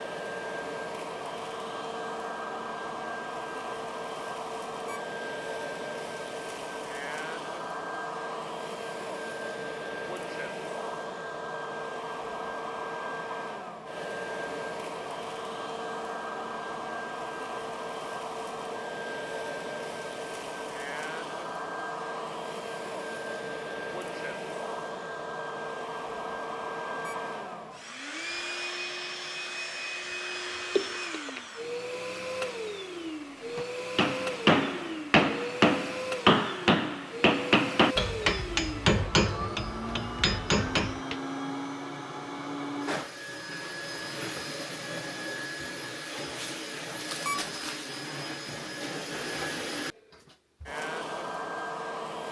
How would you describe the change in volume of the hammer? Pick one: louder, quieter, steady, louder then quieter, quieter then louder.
quieter.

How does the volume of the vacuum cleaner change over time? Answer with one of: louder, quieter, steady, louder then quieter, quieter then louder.
steady.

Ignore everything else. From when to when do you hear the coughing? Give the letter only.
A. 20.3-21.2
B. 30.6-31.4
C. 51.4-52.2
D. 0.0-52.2
B.